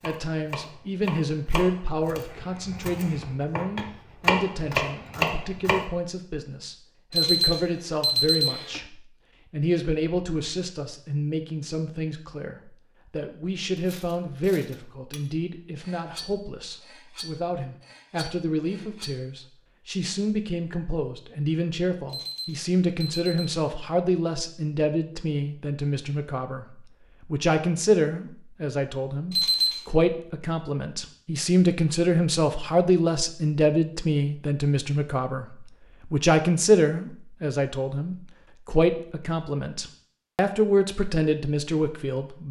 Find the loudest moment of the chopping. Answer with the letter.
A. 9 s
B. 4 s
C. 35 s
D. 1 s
B.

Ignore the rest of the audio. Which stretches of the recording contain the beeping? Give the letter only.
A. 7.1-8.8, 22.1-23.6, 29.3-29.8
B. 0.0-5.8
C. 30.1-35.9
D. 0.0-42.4
A.